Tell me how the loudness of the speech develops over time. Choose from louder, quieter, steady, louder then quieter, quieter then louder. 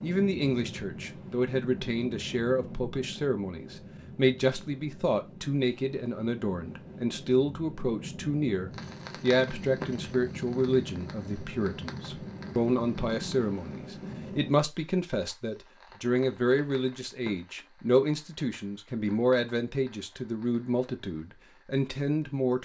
steady.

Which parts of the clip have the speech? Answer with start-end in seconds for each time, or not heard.
0.0-22.6.